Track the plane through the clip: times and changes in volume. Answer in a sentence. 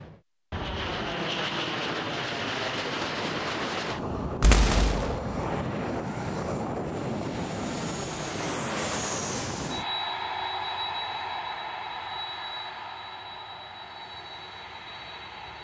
You can hear the plane from 0.0 to 15.6 s, getting quieter.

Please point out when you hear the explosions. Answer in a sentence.
You can hear the explosions from 4.4 to 5.2 s.